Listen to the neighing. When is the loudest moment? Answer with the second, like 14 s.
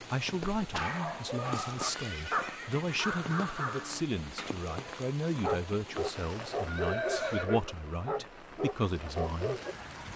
7 s.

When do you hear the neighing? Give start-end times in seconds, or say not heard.
1.5-3.1, 6.7-7.8.